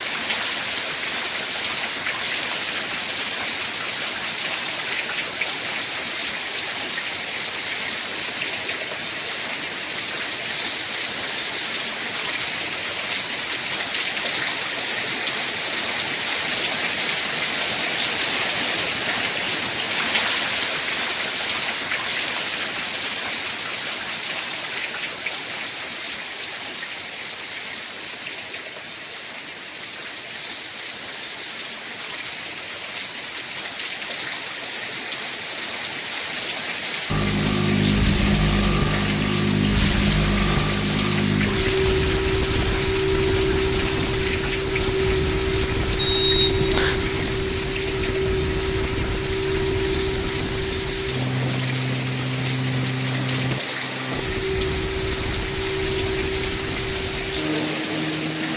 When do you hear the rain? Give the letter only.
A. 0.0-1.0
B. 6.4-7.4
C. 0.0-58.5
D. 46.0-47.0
C.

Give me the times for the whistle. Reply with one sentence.
You can hear the whistle from 46.0 to 47.0 s.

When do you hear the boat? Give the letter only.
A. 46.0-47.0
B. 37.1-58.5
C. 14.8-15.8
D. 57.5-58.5
B.